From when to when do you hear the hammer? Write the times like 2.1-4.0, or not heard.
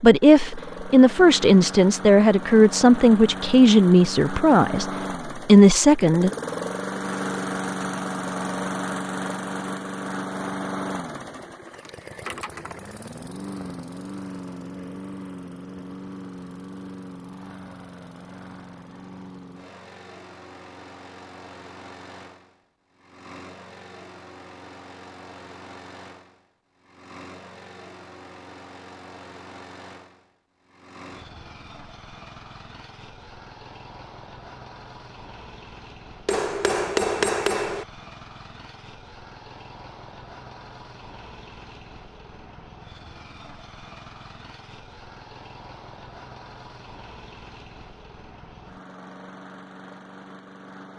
36.2-37.9.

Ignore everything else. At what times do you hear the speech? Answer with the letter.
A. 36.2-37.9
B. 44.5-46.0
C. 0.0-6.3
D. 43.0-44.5
C.